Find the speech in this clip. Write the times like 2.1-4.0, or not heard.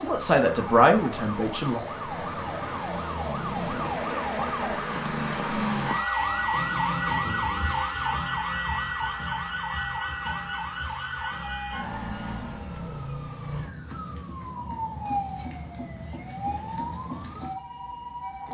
0.0-1.8.